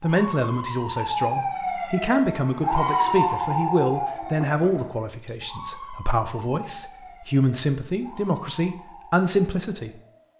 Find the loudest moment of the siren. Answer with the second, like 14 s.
3 s.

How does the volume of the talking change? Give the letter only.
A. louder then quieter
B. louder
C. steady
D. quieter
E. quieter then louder
C.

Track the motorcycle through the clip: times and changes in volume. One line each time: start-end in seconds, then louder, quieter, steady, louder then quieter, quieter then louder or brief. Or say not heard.
not heard.